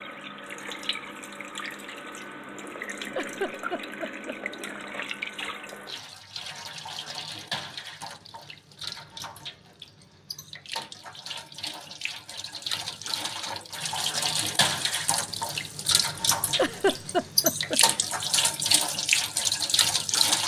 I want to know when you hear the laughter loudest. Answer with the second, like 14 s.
17 s.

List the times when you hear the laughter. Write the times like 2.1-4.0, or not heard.
3.1-4.3, 16.6-18.0.